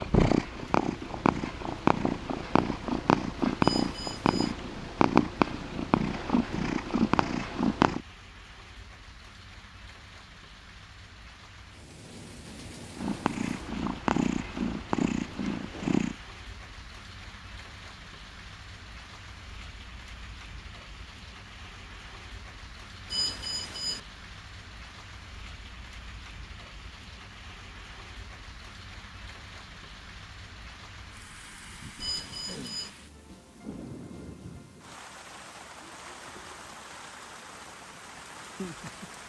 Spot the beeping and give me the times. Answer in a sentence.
You can hear the beeping from 3.6 to 4.5 s, from 23.1 to 24.0 s and from 32.0 to 32.9 s.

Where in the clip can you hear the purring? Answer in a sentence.
You can hear the purring from 0.0 to 8.0 s and from 12.9 to 16.1 s.